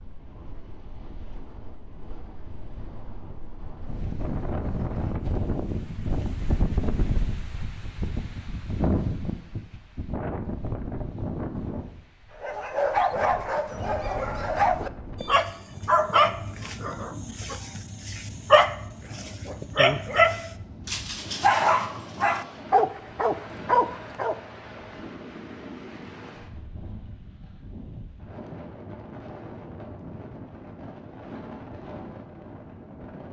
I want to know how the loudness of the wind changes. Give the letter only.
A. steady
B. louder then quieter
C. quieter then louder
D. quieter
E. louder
D.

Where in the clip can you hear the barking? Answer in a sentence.
The barking can be heard from 12.4 to 24.4 s.